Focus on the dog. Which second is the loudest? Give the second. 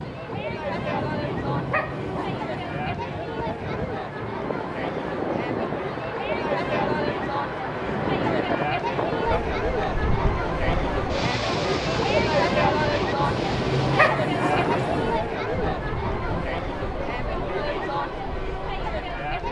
14 s.